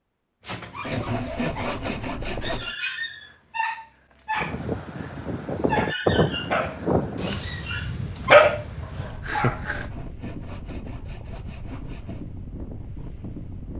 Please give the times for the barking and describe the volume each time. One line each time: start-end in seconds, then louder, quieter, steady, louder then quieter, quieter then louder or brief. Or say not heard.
0.4-9.8 louder.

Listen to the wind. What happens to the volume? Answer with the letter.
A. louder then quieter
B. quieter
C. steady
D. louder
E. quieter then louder
B.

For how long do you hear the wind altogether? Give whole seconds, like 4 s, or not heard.
9 s.